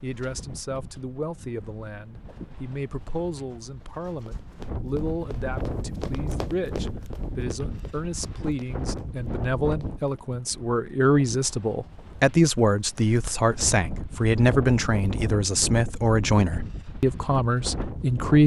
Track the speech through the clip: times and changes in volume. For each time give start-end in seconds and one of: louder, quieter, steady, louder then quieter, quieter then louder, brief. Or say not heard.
0.0-18.4 louder.